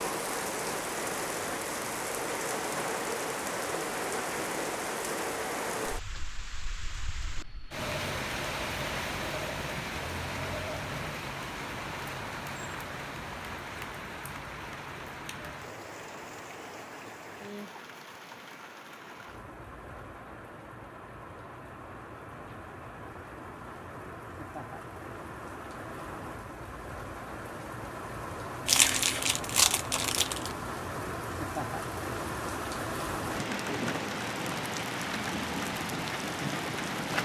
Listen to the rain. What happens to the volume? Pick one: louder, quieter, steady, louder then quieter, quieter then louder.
quieter then louder.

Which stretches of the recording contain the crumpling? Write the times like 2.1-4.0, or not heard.
28.6-30.6.